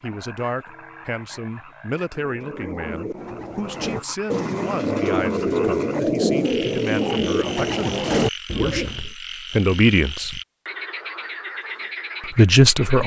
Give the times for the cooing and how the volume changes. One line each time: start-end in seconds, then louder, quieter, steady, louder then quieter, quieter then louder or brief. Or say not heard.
2.1-9.1 louder.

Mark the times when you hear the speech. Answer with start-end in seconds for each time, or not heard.
0.0-10.4, 12.3-13.0.